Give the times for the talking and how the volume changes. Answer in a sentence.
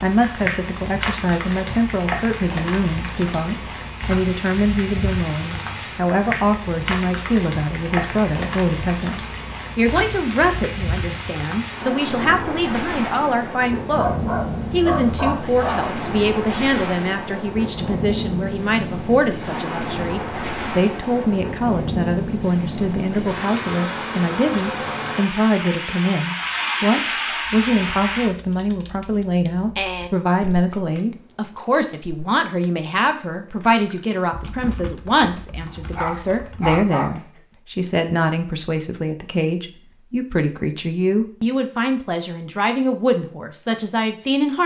You can hear the talking from 0.0 to 44.6 s, at a steady volume.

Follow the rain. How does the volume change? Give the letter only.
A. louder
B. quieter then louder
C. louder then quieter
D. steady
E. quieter
D.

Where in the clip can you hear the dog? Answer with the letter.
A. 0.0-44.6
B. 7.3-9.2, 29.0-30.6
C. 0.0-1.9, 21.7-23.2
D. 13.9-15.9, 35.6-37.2
D.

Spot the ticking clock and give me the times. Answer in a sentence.
You can't hear the ticking clock here.